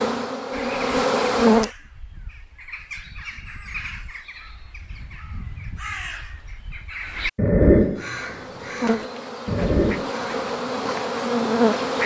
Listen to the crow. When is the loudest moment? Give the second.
8 s.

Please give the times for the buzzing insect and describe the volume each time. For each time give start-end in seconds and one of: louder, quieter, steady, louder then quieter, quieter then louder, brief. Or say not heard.
0.0-1.7 brief
8.0-12.0 quieter then louder.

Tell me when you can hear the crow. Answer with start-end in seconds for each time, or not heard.
0.5-10.4.